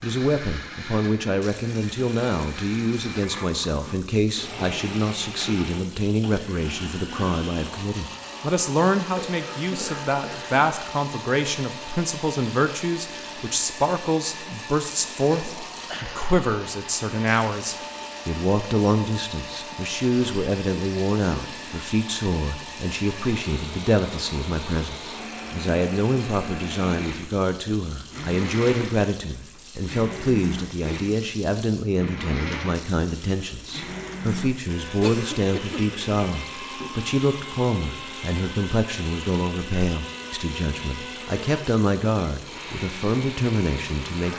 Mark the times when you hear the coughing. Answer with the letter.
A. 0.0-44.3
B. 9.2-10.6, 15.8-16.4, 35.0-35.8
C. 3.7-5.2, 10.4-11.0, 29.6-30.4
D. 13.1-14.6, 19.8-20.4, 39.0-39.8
B.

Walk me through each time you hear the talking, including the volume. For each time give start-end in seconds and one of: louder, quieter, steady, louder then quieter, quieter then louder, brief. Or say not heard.
0.0-44.3 steady.